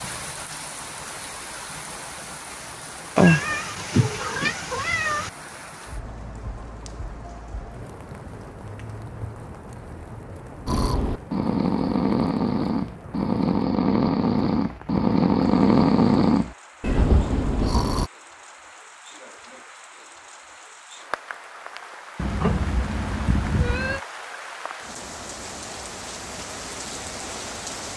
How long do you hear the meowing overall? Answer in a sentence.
You can hear the meowing for 4 seconds altogether.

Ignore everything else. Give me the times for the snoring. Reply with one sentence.
The snoring can be heard from 10.7 to 18.1 s.